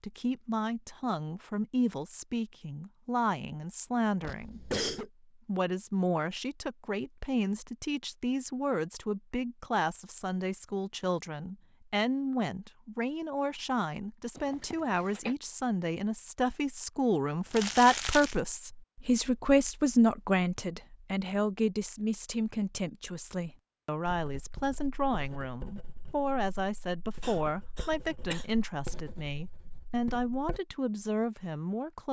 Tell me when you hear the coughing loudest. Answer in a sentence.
The volume of the coughing peaks at 5 seconds.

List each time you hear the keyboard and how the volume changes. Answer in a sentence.
The keyboard can't be heard in this clip.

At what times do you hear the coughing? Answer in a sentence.
The coughing can be heard from 4.2 to 5.1 s, from 14.3 to 15.3 s and from 27.2 to 28.9 s.